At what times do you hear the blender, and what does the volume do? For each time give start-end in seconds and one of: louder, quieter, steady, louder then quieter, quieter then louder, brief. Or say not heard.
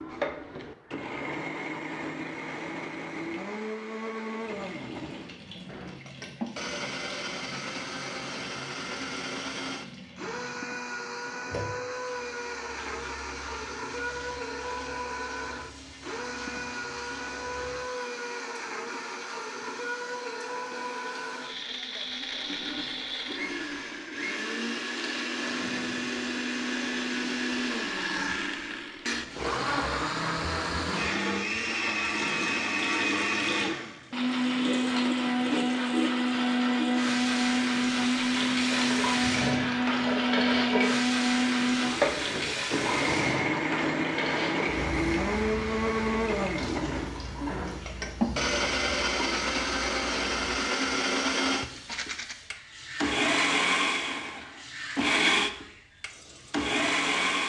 0.0-57.4 louder.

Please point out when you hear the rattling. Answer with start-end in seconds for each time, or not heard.
51.8-52.4.